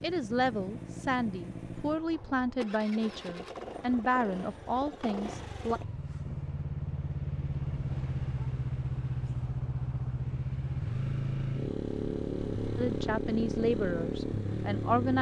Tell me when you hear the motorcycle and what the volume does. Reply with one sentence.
The motorcycle can be heard from 0.0 to 15.1 s, getting louder.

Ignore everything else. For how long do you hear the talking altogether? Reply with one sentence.
You can hear the talking for 8 seconds altogether.